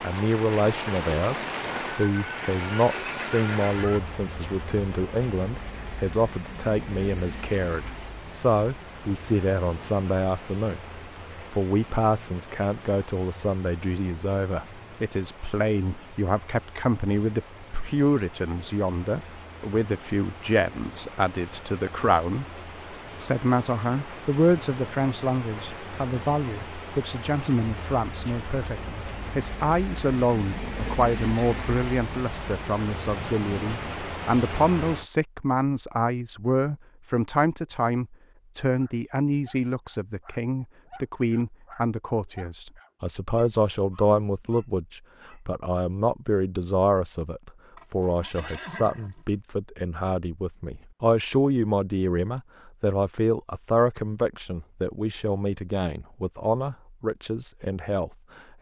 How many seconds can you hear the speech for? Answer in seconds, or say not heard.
57 s.